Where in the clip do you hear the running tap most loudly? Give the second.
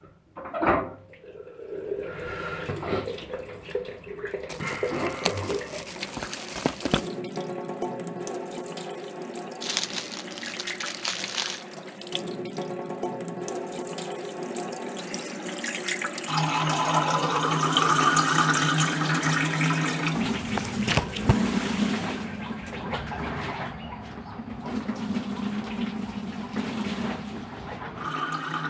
18 s.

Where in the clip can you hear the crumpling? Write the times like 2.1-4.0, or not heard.
4.5-7.0, 9.6-11.6, 20.6-21.4.